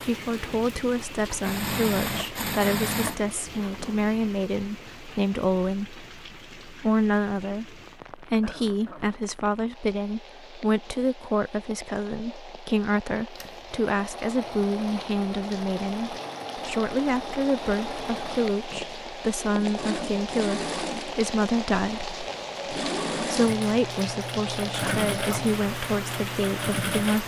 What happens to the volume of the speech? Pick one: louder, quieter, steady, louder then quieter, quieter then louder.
steady.